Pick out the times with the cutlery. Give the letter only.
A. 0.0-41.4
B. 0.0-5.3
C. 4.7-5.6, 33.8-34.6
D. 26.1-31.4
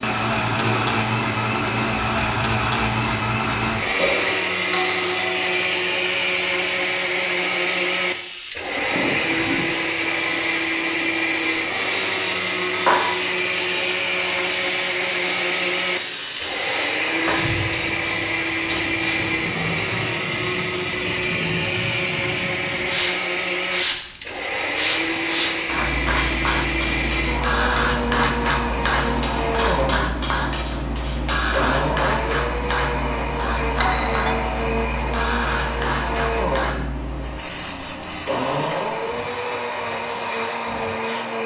D.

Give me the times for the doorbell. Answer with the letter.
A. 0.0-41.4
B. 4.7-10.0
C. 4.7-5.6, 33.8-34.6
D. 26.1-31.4
C.